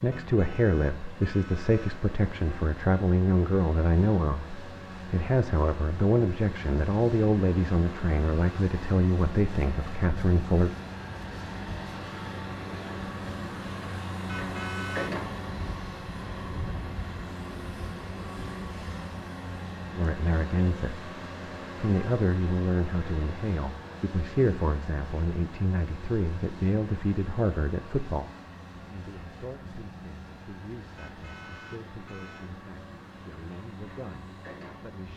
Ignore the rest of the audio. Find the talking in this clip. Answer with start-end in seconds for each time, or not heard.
0.0-10.8, 19.9-21.1, 21.8-35.1.